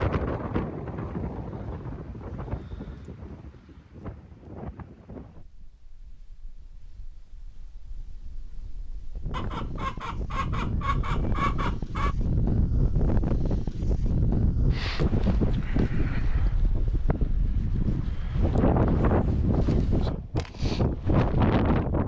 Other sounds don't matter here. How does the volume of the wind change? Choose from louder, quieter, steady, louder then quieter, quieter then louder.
quieter then louder.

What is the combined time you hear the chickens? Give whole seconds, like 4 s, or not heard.
3 s.